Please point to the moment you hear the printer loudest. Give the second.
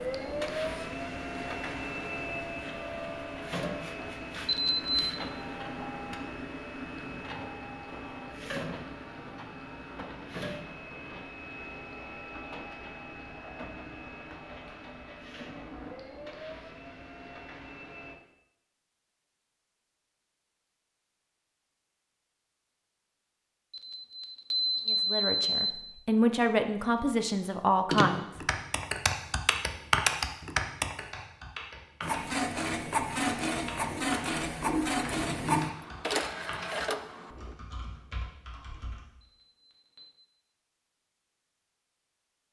35 s.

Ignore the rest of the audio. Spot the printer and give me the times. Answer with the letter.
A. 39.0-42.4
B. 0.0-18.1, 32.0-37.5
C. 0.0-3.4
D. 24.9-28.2
B.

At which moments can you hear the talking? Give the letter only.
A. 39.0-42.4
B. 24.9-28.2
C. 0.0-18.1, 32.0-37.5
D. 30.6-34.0
B.